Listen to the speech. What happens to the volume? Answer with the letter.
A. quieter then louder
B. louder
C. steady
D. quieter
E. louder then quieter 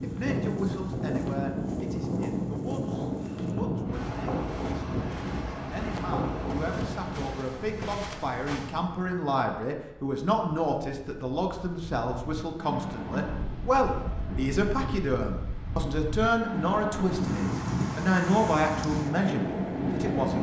B.